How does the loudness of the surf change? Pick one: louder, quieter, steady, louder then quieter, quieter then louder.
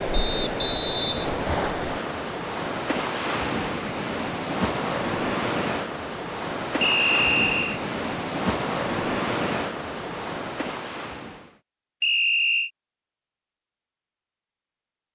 steady.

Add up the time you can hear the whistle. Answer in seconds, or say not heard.
3 s.